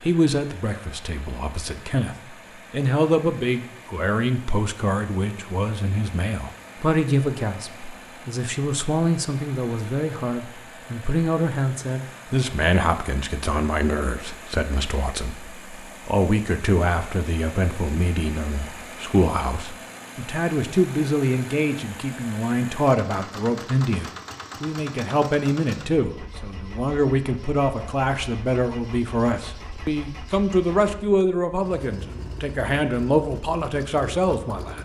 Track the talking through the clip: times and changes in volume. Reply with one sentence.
You can hear the talking from 0.0 to 34.8 s, at a steady volume.